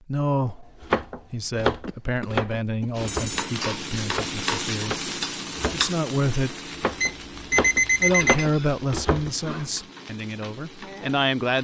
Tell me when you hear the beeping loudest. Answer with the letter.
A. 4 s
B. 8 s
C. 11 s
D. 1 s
B.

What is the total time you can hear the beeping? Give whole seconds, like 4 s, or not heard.
2 s.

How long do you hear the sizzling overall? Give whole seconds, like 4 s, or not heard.
9 s.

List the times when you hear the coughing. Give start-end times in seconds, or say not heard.
1.9-3.0.